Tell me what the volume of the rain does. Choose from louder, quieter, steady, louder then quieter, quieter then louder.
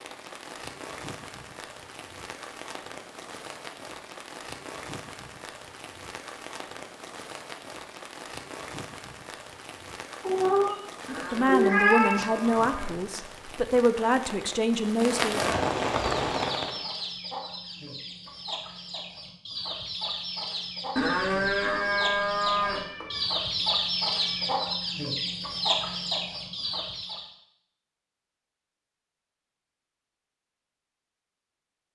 louder.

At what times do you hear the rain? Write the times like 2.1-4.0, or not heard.
0.0-16.9.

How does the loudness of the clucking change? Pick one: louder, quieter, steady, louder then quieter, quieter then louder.
louder.